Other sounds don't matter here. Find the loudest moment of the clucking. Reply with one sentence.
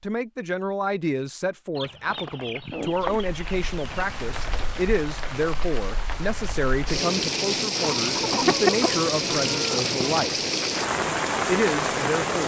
The volume of the clucking peaks at 9 seconds.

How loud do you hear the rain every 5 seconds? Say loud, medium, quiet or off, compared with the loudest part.
quiet, loud, loud.